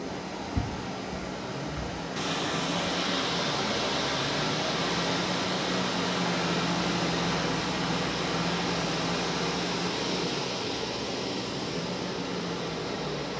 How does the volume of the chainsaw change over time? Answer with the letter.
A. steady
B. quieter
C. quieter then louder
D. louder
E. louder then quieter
E.